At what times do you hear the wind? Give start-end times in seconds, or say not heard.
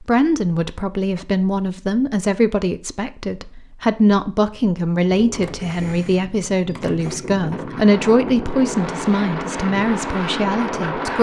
5.0-11.1.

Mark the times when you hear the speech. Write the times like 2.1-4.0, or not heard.
0.0-11.1.